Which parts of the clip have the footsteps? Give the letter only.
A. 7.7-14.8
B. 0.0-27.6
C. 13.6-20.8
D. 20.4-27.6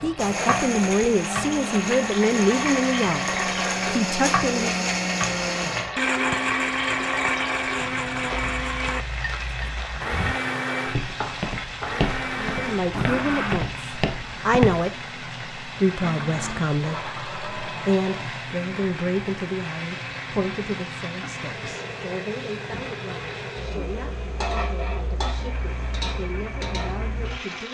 A.